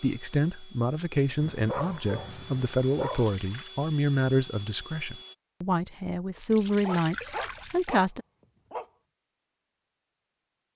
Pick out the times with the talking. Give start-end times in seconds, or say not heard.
0.0-8.2.